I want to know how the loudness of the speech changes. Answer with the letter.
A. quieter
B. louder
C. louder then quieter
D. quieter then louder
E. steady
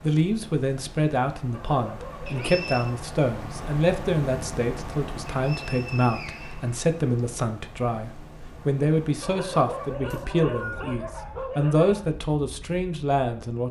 E.